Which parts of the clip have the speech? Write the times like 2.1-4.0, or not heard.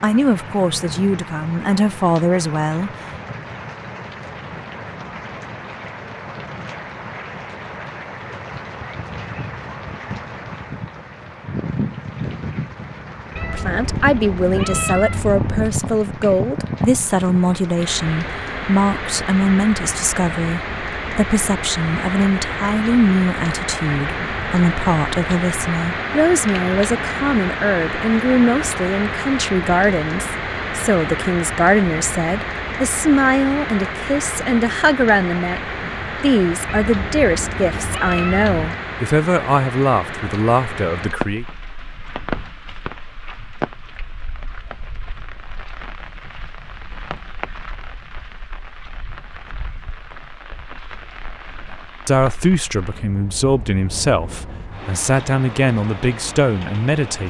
0.0-2.9, 13.5-35.6, 36.2-41.5, 52.0-57.2.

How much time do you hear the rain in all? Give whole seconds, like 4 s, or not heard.
57 s.